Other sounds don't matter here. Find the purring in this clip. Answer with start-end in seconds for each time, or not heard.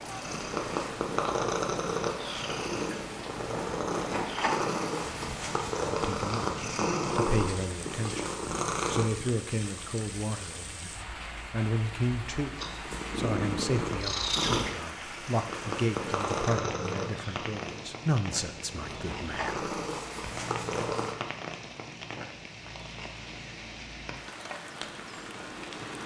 0.0-9.1, 12.6-21.1.